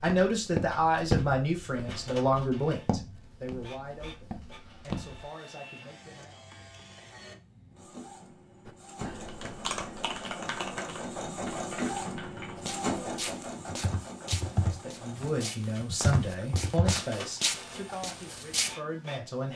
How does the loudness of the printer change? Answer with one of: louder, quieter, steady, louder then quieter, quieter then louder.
louder then quieter.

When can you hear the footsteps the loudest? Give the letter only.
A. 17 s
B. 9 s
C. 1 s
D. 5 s
C.